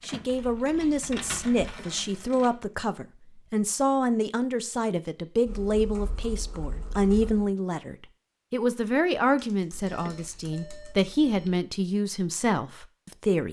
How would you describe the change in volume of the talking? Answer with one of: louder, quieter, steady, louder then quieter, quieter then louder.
steady.